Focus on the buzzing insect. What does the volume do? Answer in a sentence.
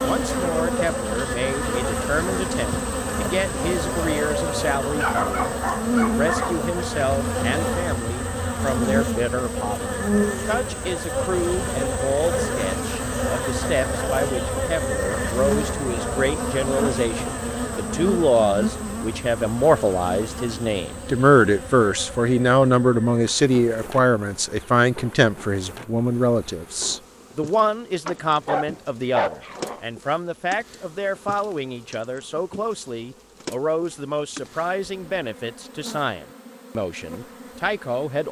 The volume of the buzzing insect goes down.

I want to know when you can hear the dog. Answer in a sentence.
You can hear the dog from 5.0 to 6.5 s and from 28.1 to 29.8 s.